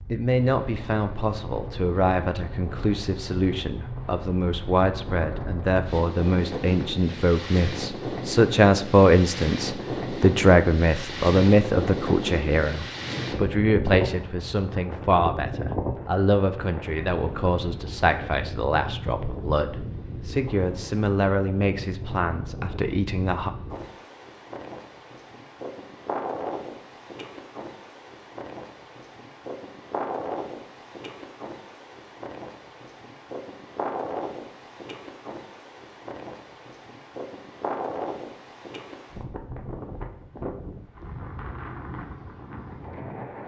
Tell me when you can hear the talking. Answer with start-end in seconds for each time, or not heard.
0.1-23.5.